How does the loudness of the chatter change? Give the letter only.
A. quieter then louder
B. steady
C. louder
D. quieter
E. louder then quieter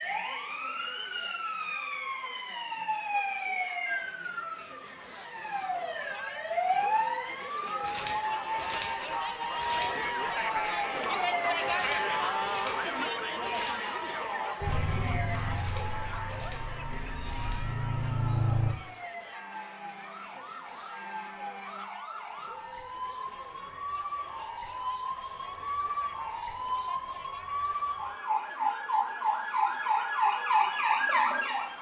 E.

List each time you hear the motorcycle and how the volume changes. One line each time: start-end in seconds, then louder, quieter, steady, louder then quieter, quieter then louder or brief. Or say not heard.
14.6-18.8 quieter then louder.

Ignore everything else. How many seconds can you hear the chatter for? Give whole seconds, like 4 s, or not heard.
32 s.